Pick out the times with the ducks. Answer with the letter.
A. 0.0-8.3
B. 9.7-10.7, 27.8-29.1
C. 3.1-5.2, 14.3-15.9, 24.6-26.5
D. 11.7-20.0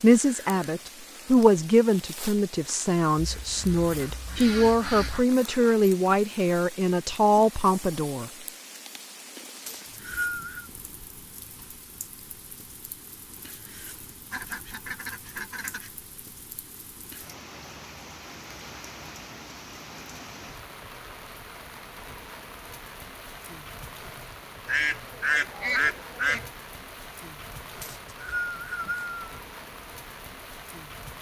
C.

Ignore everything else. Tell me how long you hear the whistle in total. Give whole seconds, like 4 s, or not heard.
2 s.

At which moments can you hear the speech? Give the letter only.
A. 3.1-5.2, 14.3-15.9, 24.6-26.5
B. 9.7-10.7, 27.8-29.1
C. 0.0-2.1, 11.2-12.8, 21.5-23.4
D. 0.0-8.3
D.